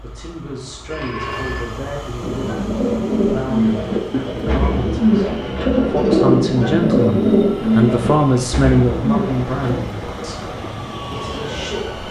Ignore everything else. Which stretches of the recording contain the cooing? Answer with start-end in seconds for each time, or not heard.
2.2-9.8.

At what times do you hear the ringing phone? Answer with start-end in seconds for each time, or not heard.
0.9-1.8.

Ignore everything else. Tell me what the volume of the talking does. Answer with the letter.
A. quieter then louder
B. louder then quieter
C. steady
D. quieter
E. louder
B.